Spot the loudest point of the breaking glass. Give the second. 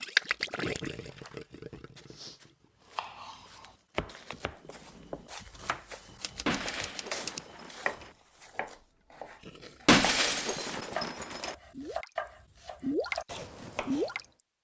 10 s.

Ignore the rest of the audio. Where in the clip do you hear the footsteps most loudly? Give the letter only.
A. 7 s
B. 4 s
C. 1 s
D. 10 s
A.